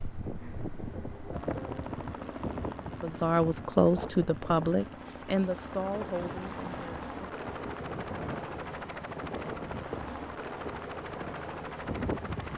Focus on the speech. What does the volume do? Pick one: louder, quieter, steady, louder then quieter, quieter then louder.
quieter.